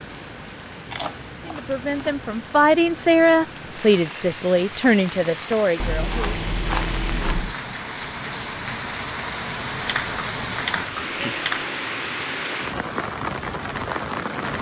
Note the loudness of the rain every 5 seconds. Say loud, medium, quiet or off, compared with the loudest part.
medium, loud, loud.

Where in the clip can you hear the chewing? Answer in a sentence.
You can hear the chewing from 0.9 to 2.3 s, from 5.8 to 7.5 s and from 9.8 to 11.7 s.